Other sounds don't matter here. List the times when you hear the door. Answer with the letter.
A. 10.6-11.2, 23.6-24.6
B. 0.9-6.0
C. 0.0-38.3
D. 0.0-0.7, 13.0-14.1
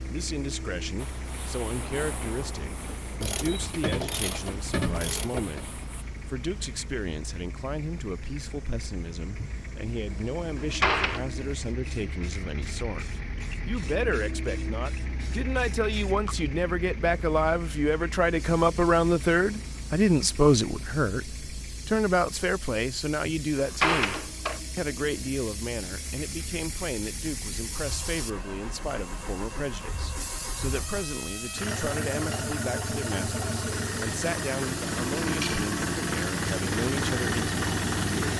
A.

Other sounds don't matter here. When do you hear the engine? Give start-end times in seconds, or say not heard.
0.0-38.3.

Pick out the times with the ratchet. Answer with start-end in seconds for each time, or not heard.
3.2-5.7.